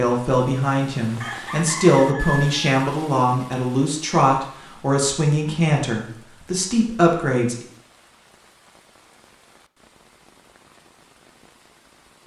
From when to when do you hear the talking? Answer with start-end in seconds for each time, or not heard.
0.0-7.7.